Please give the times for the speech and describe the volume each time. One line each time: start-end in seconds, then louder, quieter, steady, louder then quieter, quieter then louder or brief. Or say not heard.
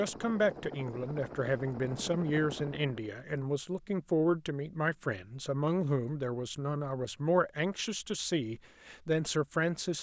0.0-9.9 steady.